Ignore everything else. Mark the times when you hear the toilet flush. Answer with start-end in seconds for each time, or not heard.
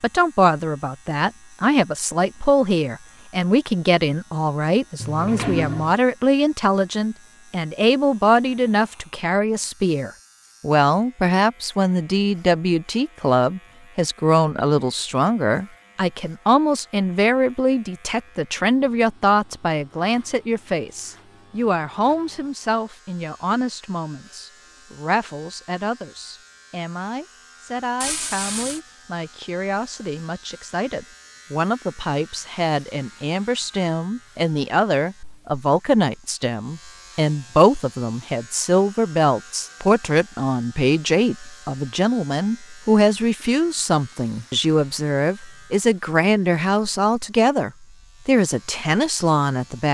5.0-6.0, 28.0-28.8.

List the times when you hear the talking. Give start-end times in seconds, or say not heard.
0.0-49.9.